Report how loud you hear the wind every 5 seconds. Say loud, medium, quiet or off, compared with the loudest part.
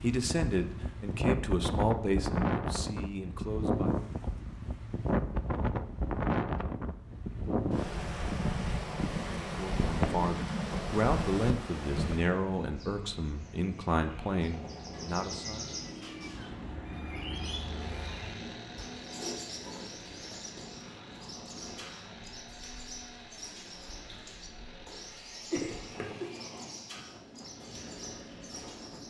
loud, loud, loud, quiet, quiet, quiet.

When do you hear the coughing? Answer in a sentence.
The coughing can be heard from 25.5 to 26.2 s.